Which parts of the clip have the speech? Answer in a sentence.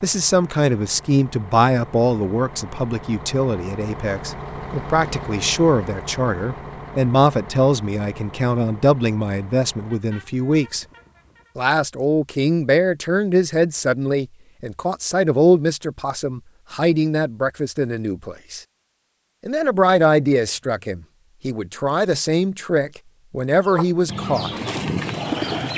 The speech can be heard from 0.0 to 10.8 s, from 11.6 to 18.6 s and from 19.4 to 24.5 s.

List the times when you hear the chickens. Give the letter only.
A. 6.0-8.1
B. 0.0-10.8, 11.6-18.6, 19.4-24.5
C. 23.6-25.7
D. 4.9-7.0
C.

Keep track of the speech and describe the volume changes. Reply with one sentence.
The volume of the speech stays about the same.